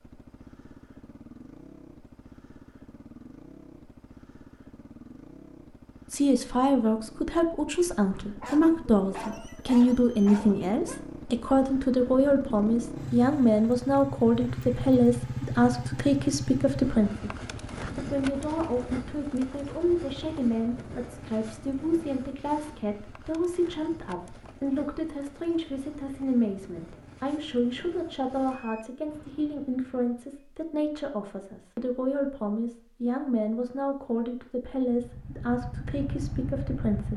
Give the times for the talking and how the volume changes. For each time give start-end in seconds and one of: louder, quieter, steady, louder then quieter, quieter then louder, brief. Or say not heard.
6.1-37.1 quieter.